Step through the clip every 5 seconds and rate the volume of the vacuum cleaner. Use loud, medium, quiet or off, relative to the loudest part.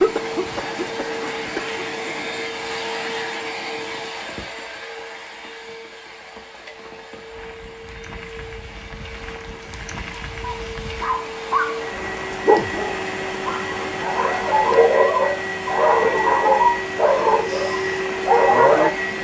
loud, quiet, loud, loud.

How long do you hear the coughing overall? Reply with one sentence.
The coughing can be heard for 2 seconds in total.